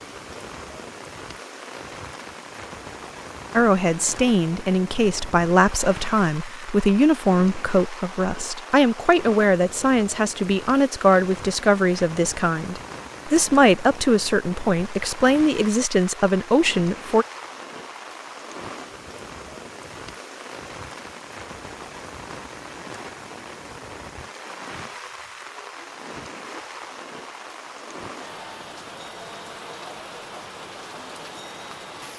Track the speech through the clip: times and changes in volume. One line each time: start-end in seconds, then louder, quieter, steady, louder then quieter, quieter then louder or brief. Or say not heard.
3.5-17.2 steady.